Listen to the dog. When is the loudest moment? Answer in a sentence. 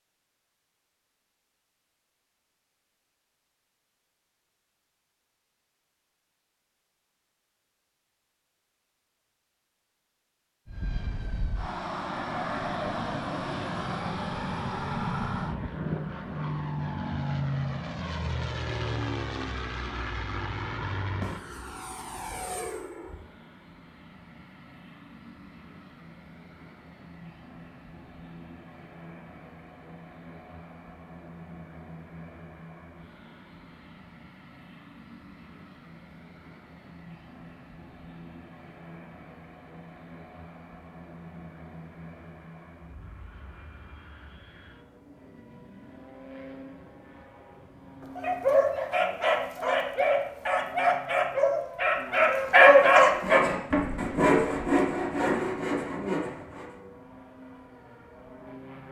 The loudest moment of the dog is at 53 seconds.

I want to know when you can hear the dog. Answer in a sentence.
You can hear the dog from 48.0 to 53.4 s.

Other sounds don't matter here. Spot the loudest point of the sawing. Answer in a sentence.
The volume of the sawing peaks at 54 seconds.